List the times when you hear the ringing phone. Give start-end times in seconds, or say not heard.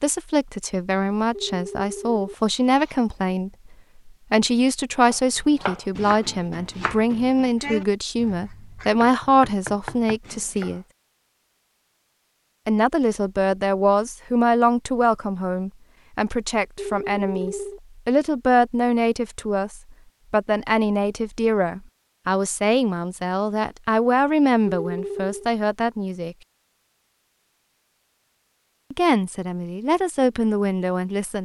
1.3-3.0, 16.8-17.8, 24.6-25.5.